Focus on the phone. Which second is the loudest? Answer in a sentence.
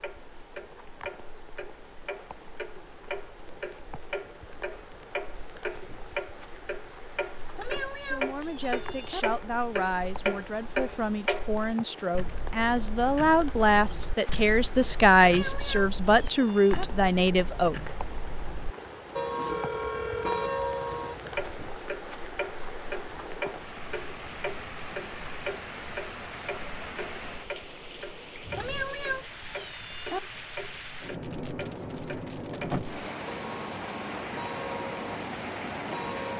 The volume of the phone peaks at 20 seconds.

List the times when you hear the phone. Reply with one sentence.
The phone can be heard from 19.4 to 21.4 s.